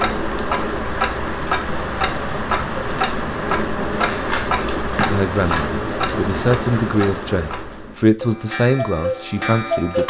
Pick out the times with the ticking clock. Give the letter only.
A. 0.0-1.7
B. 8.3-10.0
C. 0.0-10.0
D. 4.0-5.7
C.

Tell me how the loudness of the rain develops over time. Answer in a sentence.
The loudness of the rain stays about the same.